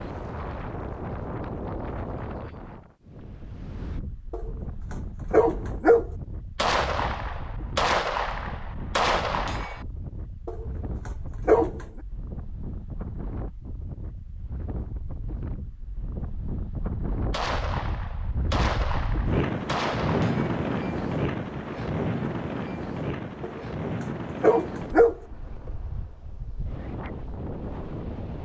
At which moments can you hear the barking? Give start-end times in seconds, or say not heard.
4.3-6.0, 10.4-11.8, 23.4-25.1.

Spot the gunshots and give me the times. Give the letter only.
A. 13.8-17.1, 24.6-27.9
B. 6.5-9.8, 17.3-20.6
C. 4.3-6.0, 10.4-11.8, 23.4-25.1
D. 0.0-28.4
B.